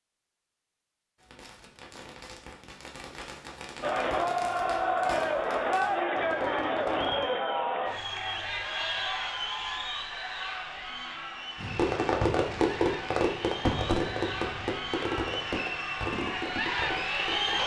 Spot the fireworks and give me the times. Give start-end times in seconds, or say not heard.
1.1-7.2, 11.6-17.6.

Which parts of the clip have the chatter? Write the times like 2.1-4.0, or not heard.
3.8-17.6.